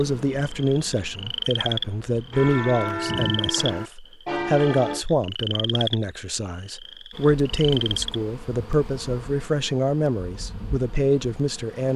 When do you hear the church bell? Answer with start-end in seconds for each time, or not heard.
2.3-5.0.